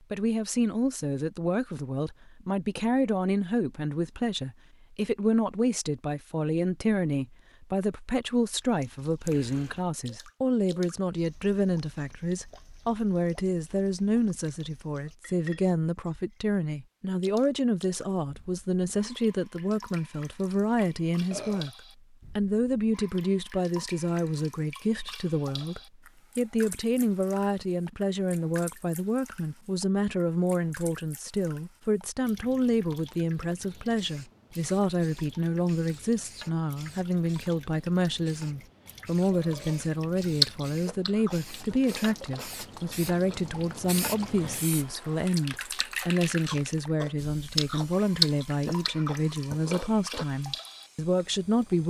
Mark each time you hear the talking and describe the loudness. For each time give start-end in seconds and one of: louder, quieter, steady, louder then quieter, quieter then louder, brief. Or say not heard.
0.1-21.7 steady
22.4-51.8 steady.